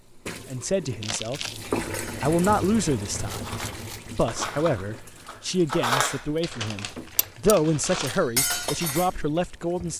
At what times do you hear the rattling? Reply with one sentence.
The rattling can be heard from 3.2 to 4.2 s.